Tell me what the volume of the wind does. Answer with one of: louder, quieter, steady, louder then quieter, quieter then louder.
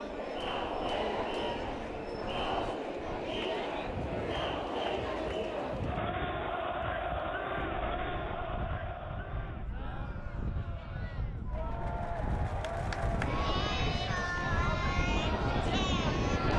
louder.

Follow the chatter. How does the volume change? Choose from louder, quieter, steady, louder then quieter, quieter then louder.
quieter then louder.